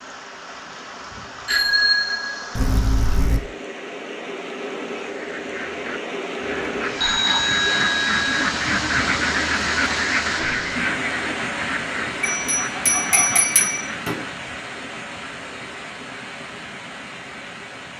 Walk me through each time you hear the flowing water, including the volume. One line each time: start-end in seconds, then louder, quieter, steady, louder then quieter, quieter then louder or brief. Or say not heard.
0.0-17.9 louder then quieter.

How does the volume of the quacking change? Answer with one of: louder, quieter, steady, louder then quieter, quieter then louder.
louder then quieter.